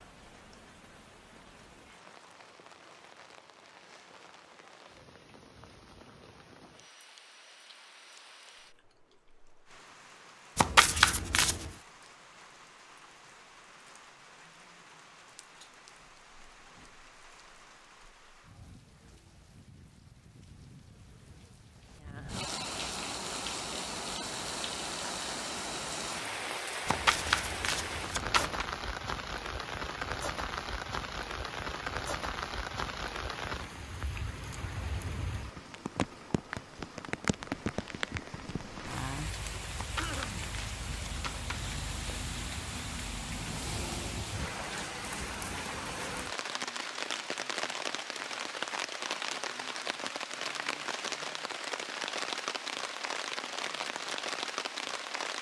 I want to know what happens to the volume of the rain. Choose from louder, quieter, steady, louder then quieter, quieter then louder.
louder.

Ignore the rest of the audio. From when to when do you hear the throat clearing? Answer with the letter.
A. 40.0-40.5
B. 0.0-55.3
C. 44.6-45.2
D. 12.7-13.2
A.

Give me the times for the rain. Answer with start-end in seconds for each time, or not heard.
0.0-55.3.